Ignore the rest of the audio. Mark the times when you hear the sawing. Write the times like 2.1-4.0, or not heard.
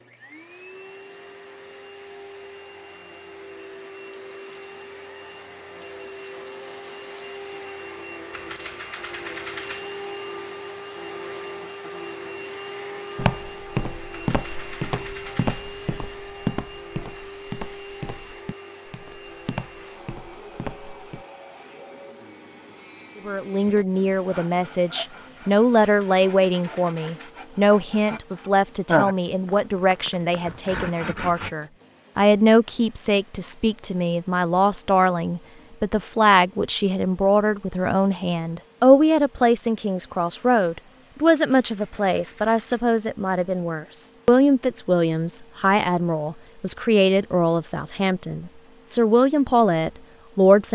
23.6-31.5.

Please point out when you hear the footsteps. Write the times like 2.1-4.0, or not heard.
13.2-21.2.